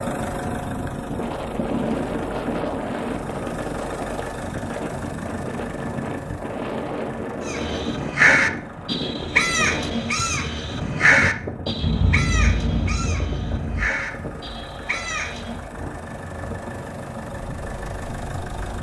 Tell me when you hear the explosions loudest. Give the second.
12 s.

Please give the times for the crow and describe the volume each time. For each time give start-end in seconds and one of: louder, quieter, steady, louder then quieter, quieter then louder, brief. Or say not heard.
7.5-15.6 quieter.